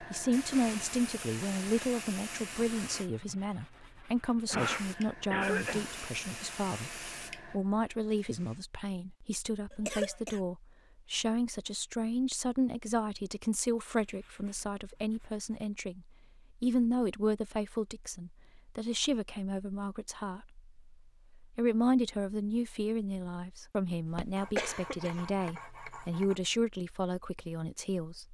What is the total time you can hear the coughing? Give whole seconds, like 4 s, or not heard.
3 s.